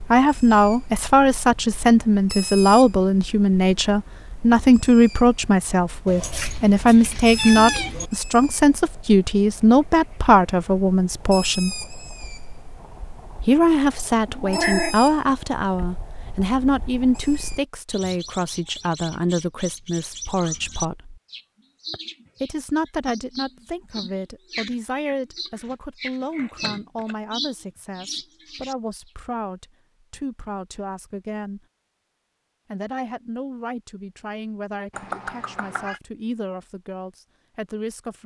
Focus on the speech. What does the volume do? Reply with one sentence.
The volume of the speech goes down.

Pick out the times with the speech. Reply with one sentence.
You can hear the speech from 0.1 to 11.8 s, from 13.4 to 21.2 s, from 22.4 to 31.6 s and from 32.7 to 38.2 s.